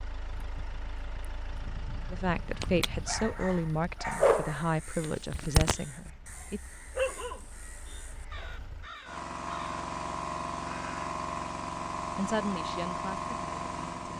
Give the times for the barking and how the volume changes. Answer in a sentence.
The barking can be heard from 2.6 to 8.8 s, getting louder then quieter.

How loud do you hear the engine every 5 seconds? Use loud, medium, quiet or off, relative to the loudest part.
quiet, medium, loud.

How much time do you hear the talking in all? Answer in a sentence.
The talking can be heard for 6 seconds in total.